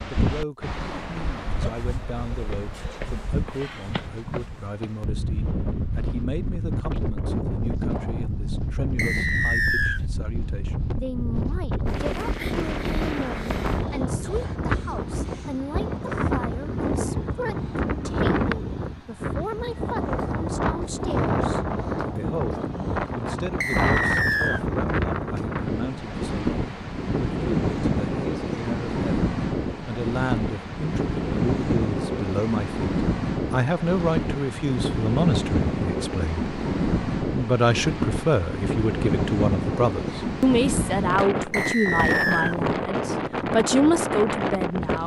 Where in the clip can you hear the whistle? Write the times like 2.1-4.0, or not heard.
8.9-10.0, 23.6-24.6, 41.5-42.5.